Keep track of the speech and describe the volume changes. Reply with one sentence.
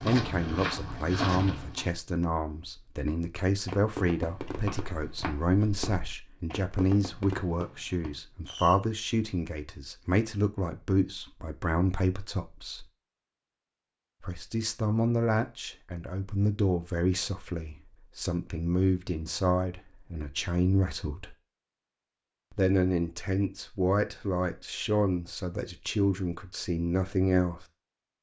The loudness of the speech stays about the same.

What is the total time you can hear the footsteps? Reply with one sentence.
The footsteps can be heard for 3 seconds in total.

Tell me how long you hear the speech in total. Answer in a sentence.
You can hear the speech for 25 seconds altogether.